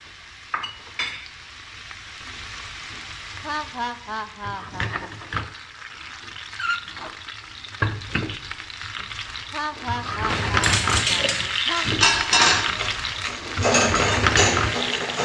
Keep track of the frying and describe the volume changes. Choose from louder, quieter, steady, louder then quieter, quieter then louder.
louder.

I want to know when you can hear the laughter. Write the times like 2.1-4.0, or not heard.
3.4-4.9, 9.5-11.8.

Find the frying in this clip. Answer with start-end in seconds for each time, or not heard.
0.0-15.1.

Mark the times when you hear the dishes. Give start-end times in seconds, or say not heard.
10.3-15.1.